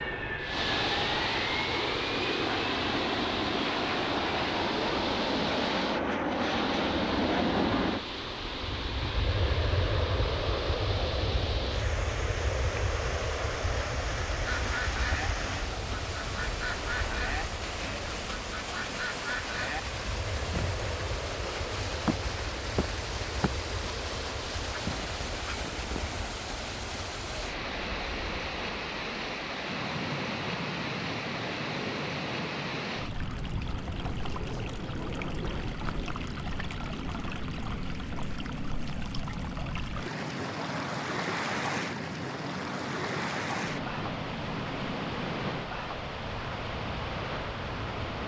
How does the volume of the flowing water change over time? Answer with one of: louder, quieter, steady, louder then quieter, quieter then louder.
steady.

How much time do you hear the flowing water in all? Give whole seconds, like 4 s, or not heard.
48 s.